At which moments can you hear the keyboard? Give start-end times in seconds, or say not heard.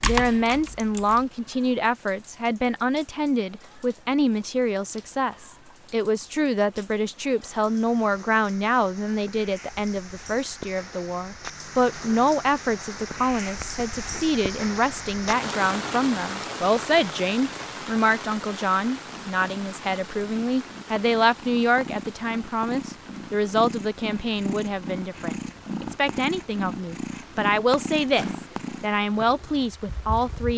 0.0-1.7.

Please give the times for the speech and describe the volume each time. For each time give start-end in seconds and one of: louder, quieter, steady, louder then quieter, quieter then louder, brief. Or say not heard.
0.0-30.5 steady.